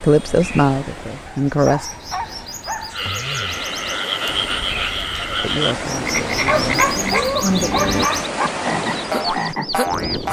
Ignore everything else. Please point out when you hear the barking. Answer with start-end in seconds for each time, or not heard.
1.2-3.0, 6.5-8.5.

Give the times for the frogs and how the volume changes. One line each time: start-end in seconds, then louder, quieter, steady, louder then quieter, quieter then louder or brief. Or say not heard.
2.9-10.2 steady.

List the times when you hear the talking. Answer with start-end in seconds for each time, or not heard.
0.0-1.9, 5.3-7.8.